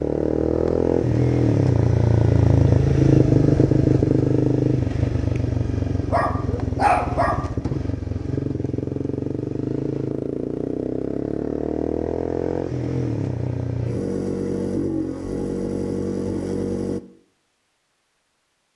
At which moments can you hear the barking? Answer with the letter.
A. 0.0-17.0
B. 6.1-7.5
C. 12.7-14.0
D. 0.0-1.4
B.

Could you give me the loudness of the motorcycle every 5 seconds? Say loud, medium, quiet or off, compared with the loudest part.
loud, medium, medium, medium.